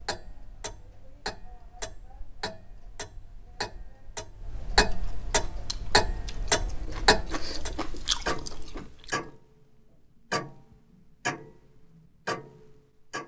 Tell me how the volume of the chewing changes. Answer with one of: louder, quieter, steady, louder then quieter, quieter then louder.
louder then quieter.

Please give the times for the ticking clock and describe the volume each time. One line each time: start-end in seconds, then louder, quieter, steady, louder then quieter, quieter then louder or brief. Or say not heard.
0.0-13.2 louder then quieter.